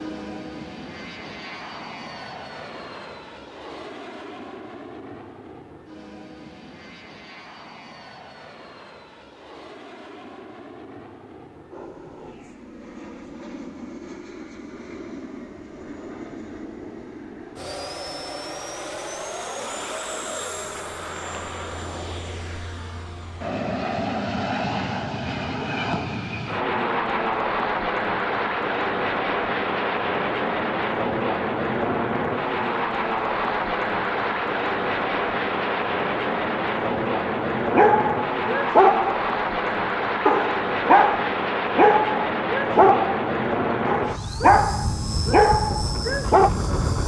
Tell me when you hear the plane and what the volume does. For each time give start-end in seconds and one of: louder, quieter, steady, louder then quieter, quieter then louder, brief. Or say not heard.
0.0-47.0 louder.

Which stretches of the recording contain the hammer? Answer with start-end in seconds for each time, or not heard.
not heard.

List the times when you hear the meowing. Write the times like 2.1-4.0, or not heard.
not heard.